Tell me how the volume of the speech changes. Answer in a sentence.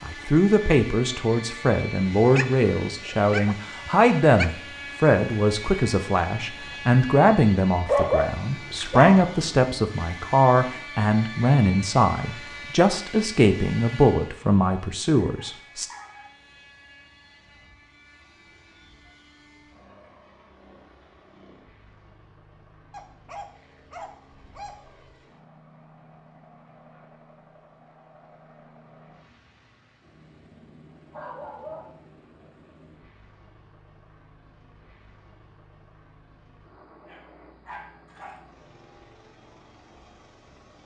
The volume of the speech stays about the same.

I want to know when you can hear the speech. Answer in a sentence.
You can hear the speech from 0.0 to 15.8 s.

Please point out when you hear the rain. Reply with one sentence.
You can't hear the rain here.